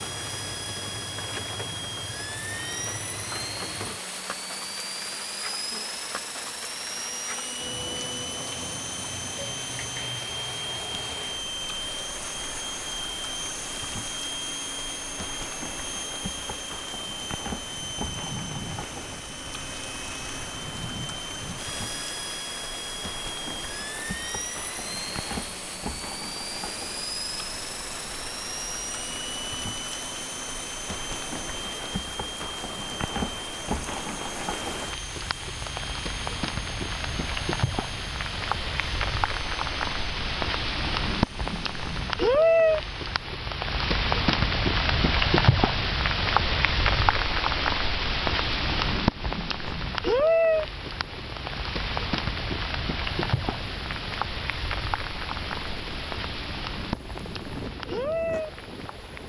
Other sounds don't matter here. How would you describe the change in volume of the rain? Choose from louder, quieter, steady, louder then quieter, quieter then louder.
louder.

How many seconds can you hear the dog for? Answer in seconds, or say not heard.
not heard.